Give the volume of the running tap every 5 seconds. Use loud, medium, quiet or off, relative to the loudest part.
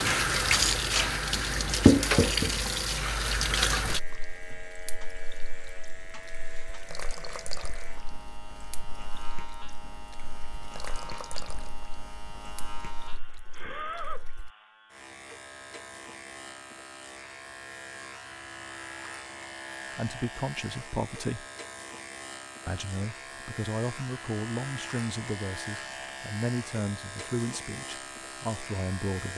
loud, quiet, quiet, off, off, off.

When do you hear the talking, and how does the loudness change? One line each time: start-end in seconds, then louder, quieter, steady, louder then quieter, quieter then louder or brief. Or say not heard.
19.9-21.4 brief
22.6-29.3 steady.